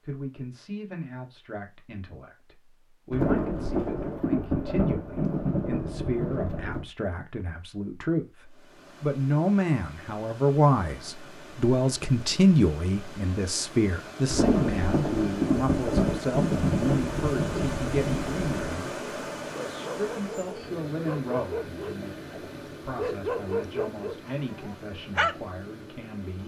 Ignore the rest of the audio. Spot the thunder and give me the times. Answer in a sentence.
You can hear the thunder from 3.1 to 6.8 s and from 14.2 to 18.8 s.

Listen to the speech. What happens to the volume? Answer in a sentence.
The loudness of the speech goes up, then down.